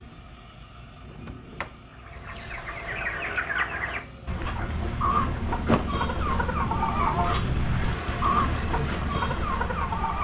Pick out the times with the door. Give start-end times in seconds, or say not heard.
1.1-3.0, 5.7-6.4.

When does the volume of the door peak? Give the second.
6 s.